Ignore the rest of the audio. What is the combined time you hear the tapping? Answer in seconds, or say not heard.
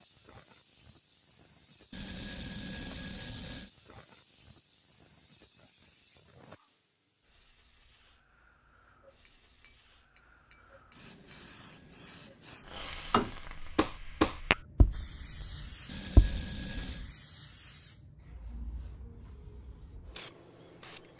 8 s.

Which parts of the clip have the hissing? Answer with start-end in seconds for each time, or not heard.
0.0-21.1.